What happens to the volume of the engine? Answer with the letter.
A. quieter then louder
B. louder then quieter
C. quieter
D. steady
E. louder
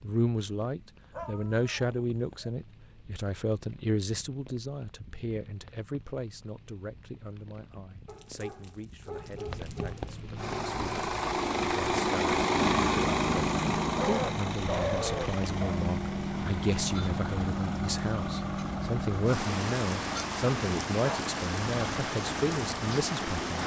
C.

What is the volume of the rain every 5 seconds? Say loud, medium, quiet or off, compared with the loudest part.
quiet, quiet, medium, loud, loud.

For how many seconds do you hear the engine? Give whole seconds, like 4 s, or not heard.
13 s.